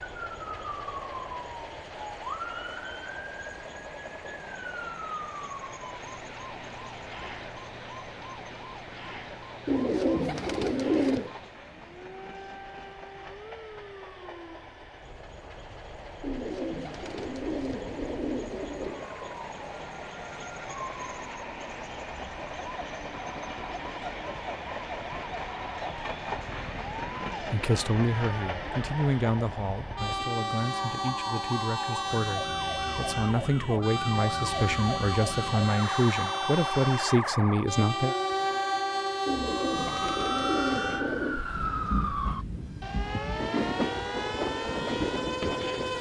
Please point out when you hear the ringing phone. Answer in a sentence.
The ringing phone can't be heard in this clip.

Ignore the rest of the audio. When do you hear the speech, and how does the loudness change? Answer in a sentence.
You can hear the speech from 27.5 to 38.1 s, getting quieter then louder.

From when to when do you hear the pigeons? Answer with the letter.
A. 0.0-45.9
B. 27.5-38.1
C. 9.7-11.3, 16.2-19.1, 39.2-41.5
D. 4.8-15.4
C.